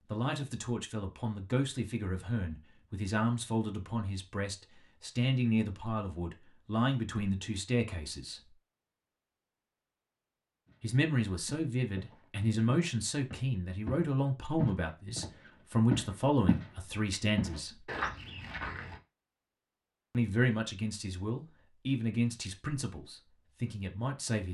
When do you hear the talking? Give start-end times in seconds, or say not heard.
0.0-8.5, 10.8-17.9, 20.1-24.4.